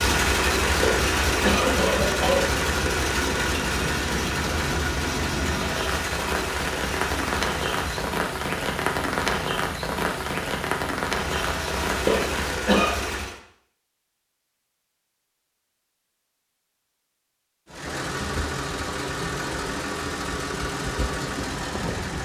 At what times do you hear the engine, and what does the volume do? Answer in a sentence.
You can hear the engine from 0.0 to 8.2 s, getting quieter; briefly from 11.1 to 13.4 s; and from 17.6 to 22.2 s, at a steady volume.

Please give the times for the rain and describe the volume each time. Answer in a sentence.
The rain can be heard from 0.0 to 12.5 s, getting louder.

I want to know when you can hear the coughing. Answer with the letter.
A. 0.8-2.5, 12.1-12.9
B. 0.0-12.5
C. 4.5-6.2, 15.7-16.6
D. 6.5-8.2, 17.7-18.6
A.